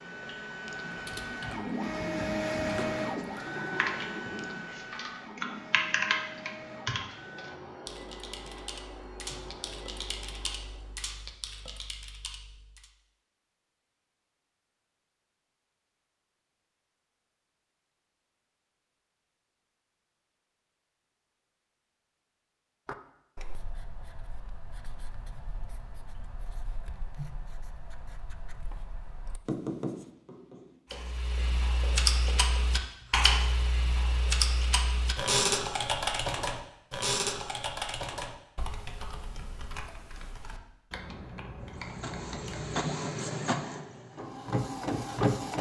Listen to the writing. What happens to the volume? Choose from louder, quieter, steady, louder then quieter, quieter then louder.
louder then quieter.